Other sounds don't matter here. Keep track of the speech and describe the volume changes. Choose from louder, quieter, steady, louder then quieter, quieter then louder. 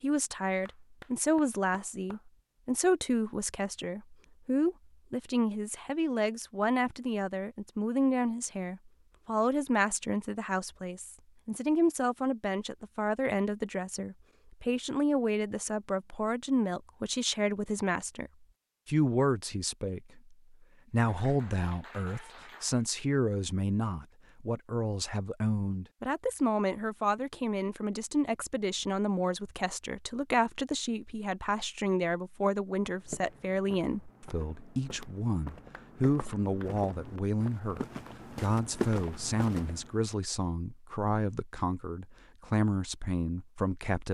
steady.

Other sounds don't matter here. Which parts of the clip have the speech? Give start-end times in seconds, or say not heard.
0.0-44.1.